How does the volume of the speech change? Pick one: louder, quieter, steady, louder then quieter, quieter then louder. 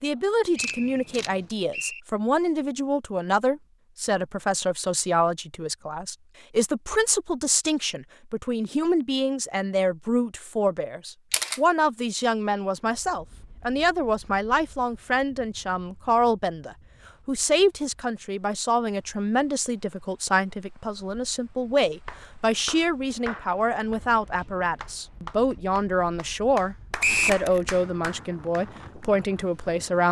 steady.